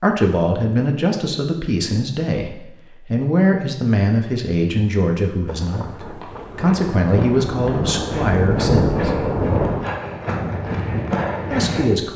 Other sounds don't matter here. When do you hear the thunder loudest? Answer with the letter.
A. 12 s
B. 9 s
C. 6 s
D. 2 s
B.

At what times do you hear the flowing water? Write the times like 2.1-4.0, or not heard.
not heard.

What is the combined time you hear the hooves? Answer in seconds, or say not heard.
6 s.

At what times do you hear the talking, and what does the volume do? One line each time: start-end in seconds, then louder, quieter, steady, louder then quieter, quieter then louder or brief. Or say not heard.
0.0-9.1 steady
11.5-12.1 brief.